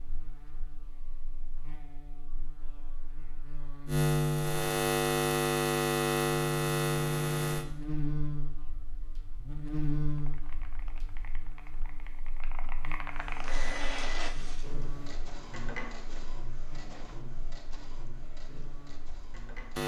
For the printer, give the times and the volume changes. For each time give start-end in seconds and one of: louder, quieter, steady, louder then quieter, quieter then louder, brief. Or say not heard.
13.2-19.8 quieter.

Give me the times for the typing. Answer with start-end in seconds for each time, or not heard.
10.2-13.5.